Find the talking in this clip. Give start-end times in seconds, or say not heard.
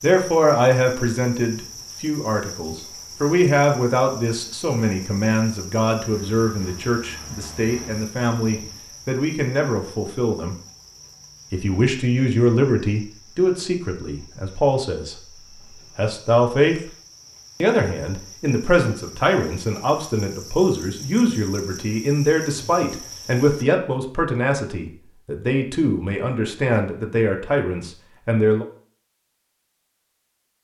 0.0-10.6, 11.5-15.2, 15.8-16.8, 17.6-28.6.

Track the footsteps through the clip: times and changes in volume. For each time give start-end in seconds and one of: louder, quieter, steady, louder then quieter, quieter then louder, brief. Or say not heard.
not heard.